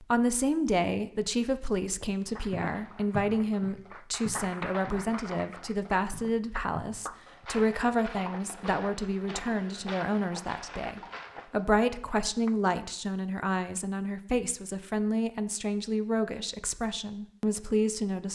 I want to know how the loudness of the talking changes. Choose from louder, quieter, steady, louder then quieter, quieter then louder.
steady.